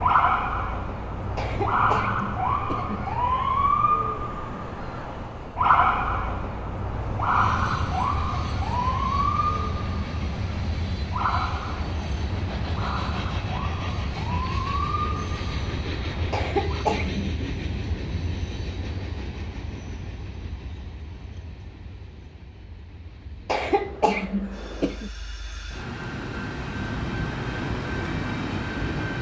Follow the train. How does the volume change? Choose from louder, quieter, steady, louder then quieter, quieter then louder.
quieter then louder.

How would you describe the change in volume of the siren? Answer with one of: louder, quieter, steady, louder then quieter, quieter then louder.
quieter.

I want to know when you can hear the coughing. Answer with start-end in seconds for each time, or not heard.
1.4-3.1, 16.3-17.3, 23.4-25.1.